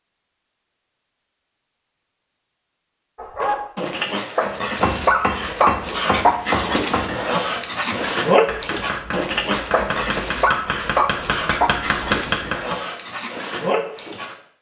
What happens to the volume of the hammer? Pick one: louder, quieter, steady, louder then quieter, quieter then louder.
quieter then louder.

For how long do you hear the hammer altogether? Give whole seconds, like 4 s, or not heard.
8 s.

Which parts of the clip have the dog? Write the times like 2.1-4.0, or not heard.
3.1-14.3.